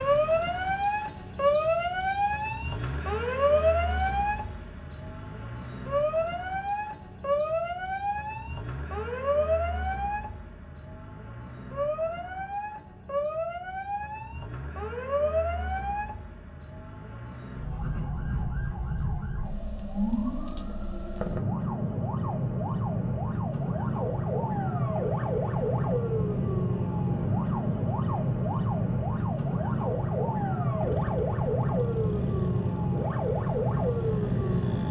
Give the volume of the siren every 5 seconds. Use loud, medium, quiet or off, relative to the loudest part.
loud, loud, medium, medium, loud, loud, loud.